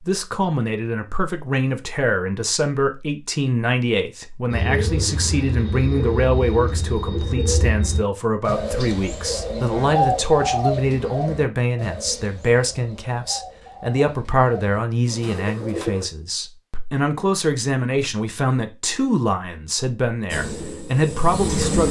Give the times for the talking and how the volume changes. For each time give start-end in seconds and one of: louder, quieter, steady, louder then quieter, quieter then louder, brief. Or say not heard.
0.1-21.8 steady.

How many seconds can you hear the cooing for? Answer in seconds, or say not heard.
13 s.